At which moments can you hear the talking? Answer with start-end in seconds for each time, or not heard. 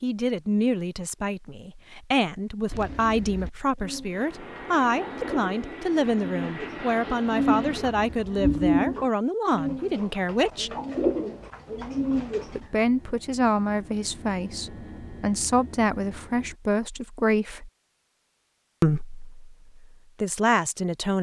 0.0-10.7, 12.4-17.7, 18.8-21.1.